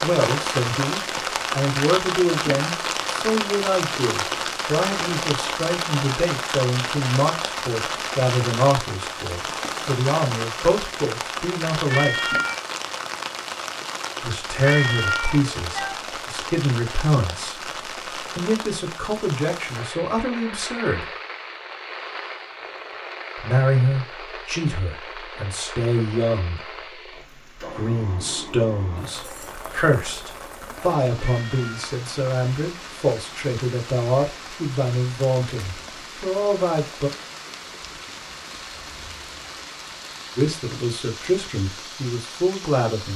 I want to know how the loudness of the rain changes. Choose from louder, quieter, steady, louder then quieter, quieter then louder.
quieter.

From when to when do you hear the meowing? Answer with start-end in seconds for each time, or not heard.
11.8-12.6, 14.6-15.9, 31.2-31.9.